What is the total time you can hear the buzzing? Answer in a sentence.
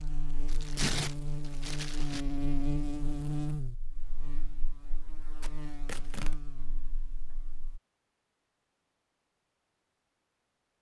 The buzzing can be heard for 8 seconds in total.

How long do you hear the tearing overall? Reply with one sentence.
You can hear the tearing for 3 seconds altogether.